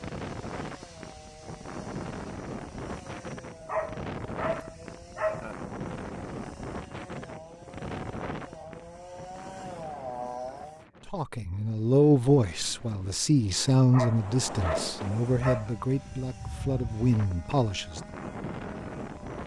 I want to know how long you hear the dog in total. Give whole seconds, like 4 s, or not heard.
4 s.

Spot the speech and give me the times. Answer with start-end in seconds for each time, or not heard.
11.1-18.0.